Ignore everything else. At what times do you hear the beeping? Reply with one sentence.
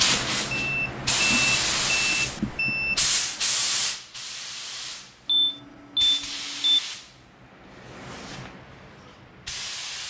The beeping can be heard from 0.5 to 3.0 s and from 5.2 to 6.8 s.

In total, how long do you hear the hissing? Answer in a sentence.
You can hear the hissing for 10 seconds altogether.